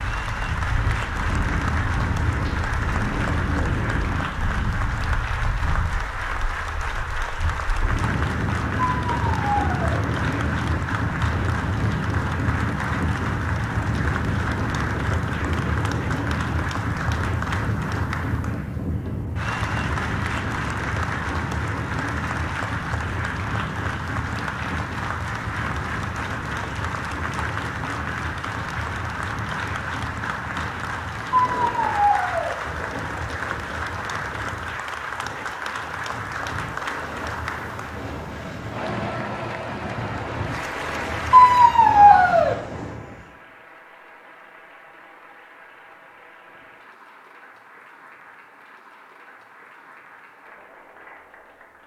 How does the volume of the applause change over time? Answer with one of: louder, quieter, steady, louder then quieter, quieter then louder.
quieter.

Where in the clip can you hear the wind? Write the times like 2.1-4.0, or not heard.
0.0-43.3.